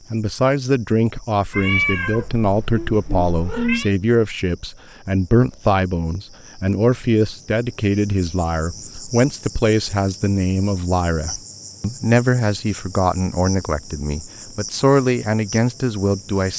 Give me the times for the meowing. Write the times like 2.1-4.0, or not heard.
1.5-3.9.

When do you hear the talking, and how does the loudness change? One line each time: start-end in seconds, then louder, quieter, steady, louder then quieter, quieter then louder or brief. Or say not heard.
0.1-16.5 steady.